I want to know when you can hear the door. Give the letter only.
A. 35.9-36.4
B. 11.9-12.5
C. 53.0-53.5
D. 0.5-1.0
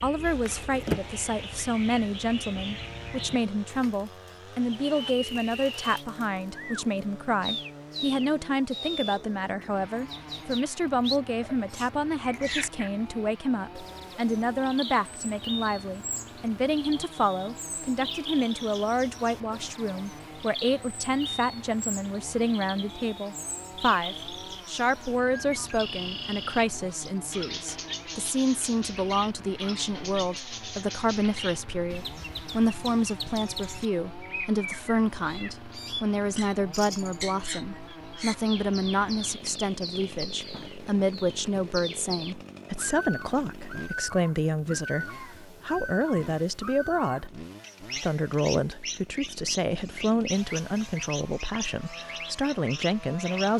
D.